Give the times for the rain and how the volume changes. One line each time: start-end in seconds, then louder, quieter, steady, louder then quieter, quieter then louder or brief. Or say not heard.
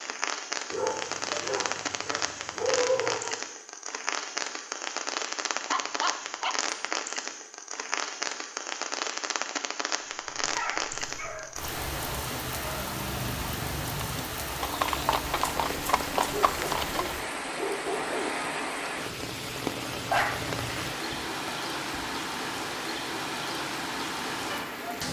0.0-25.0 steady.